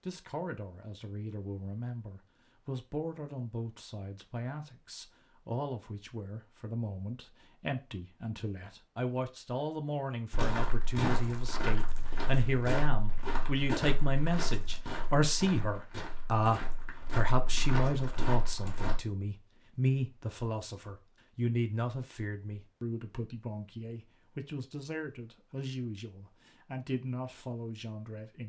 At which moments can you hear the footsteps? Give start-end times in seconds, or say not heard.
10.3-19.0.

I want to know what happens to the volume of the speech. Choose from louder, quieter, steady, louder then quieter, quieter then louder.
louder then quieter.